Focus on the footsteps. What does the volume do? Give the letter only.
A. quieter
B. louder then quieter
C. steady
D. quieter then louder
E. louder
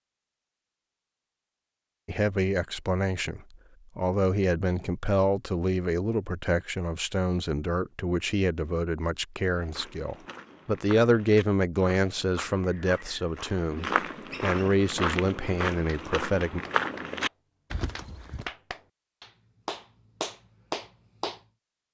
E.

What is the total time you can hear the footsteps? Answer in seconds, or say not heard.
9 s.